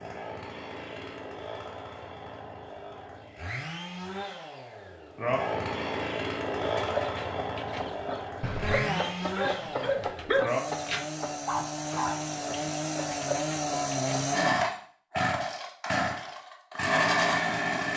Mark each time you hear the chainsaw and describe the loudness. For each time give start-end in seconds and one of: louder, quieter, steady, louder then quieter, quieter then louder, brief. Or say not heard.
0.0-17.9 louder.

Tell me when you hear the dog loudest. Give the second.
10 s.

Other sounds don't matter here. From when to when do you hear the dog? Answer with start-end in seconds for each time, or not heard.
8.4-10.4.